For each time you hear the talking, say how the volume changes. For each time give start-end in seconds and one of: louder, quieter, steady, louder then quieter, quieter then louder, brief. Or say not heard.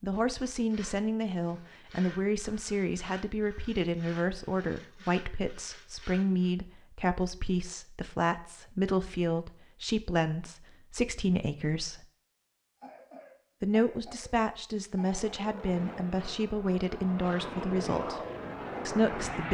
0.0-12.1 steady
13.6-18.2 steady
18.9-19.4 brief.